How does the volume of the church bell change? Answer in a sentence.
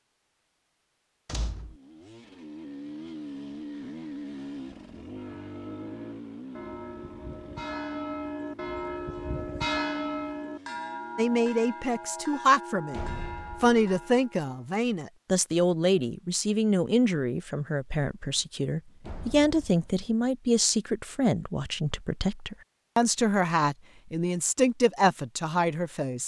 The loudness of the church bell goes up, then down.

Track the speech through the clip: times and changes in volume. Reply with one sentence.
You can hear the speech from 11.2 to 26.2 s, at a steady volume.